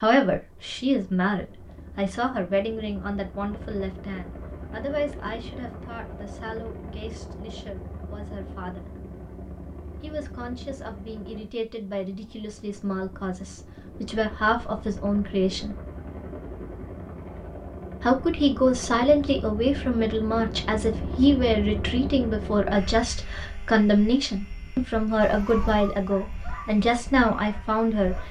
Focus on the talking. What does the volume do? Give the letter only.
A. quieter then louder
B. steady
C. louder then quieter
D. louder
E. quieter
A.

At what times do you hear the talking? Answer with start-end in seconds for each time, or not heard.
0.0-8.9, 10.0-15.8, 18.0-28.1.